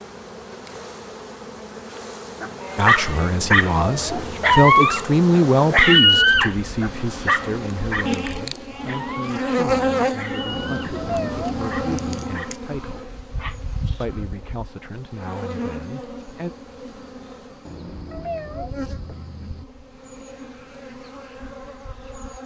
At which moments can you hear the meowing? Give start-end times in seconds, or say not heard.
3.2-4.6, 10.4-12.2, 17.6-19.6.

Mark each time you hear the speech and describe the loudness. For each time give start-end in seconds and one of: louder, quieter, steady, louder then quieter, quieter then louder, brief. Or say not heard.
2.8-13.1 quieter
14.0-16.5 brief.